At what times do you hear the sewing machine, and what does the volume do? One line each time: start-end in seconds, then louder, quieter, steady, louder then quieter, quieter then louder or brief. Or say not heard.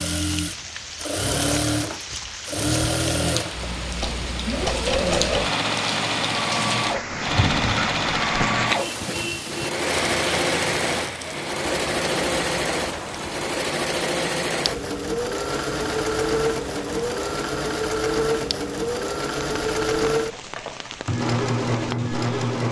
0.0-22.6 steady.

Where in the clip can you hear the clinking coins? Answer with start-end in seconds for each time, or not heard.
not heard.